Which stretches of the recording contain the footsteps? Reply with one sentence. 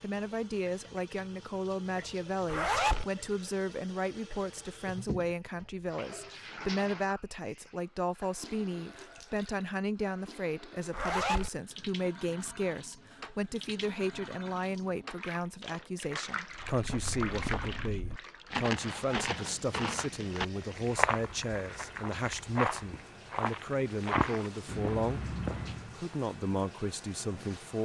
You can hear the footsteps from 16.6 to 26.0 s.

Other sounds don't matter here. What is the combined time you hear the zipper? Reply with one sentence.
The zipper can be heard for 2 seconds in total.